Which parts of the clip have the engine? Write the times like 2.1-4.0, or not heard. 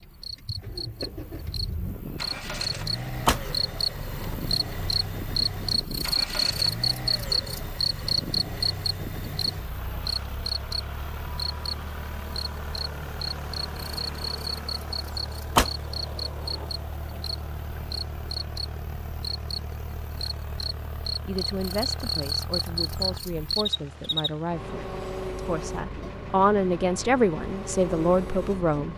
0.0-28.9.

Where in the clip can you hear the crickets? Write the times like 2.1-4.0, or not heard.
0.0-24.3.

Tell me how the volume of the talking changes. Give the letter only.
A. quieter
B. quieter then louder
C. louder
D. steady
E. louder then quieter
C.